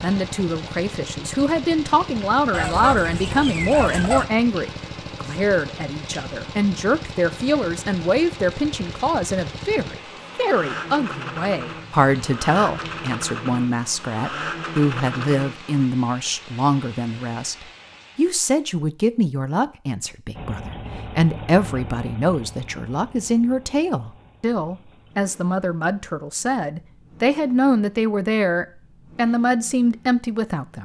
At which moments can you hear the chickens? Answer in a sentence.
The chickens can be heard from 2.5 to 4.2 s.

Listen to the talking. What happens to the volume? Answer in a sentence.
The volume of the talking stays about the same.